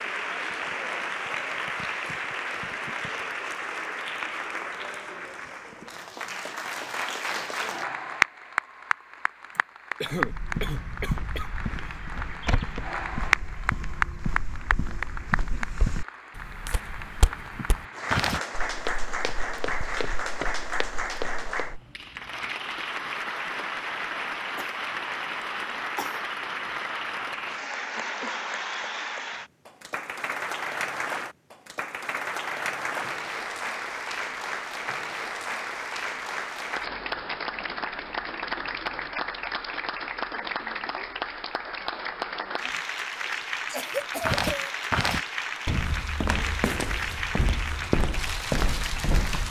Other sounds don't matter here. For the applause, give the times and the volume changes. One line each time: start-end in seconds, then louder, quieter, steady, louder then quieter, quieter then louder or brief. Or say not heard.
0.0-49.4 steady.